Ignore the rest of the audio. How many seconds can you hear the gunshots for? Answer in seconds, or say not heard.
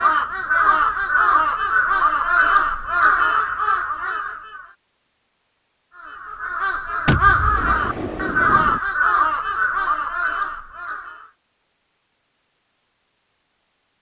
2 s.